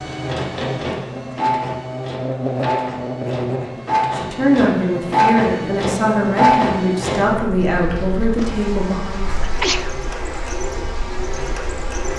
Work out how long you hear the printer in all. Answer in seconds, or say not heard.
12 s.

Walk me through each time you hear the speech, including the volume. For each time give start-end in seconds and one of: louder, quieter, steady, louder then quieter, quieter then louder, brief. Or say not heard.
4.1-9.2 steady.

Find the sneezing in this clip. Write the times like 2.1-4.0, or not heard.
9.4-9.9.